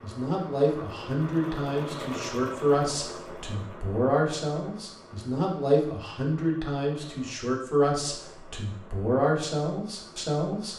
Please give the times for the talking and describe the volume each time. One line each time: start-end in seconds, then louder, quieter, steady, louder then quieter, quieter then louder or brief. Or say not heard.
0.0-10.7 steady.